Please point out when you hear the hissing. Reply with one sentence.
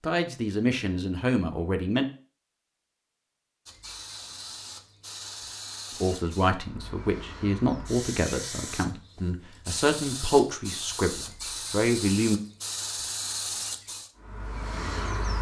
The hissing can be heard from 3.6 to 15.3 s.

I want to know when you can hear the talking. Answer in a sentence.
You can hear the talking from 0.0 to 2.0 s and from 6.0 to 12.4 s.